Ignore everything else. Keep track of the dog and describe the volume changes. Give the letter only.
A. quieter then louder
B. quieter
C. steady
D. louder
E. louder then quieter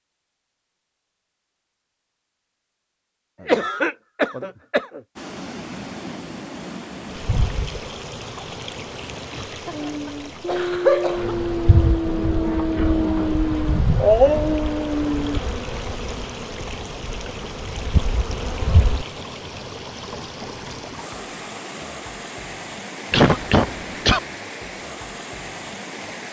D.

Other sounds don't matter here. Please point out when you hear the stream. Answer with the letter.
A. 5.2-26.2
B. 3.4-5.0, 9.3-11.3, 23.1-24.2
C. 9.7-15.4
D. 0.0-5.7
A.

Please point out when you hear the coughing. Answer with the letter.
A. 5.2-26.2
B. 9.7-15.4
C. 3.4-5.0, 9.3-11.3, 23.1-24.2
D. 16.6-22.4
C.